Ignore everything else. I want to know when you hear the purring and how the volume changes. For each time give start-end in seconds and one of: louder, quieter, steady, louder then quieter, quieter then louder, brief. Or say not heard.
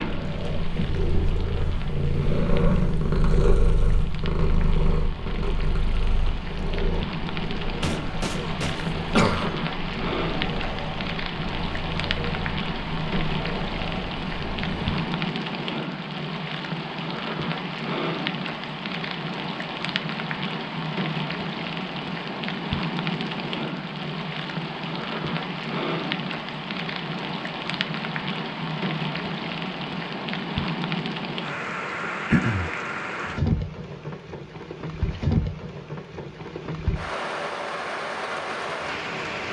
0.0-15.2 quieter.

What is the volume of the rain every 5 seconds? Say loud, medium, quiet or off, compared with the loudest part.
medium, loud, loud, loud, loud, loud, loud, loud.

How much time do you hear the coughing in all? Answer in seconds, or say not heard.
2 s.